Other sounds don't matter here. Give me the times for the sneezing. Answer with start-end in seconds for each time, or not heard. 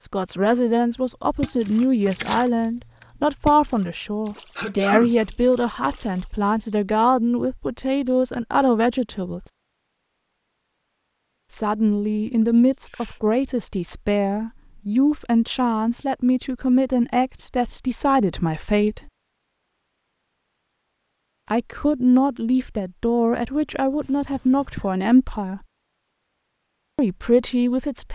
4.5-5.2, 12.4-13.2, 24.0-24.9.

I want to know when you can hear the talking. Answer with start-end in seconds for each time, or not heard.
0.0-9.4, 11.5-19.1, 21.5-25.6, 26.9-28.1.